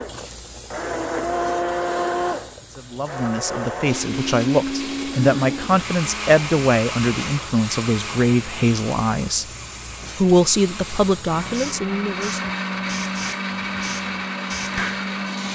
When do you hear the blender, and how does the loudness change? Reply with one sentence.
The blender can be heard from 0.0 to 15.5 s, getting quieter then louder.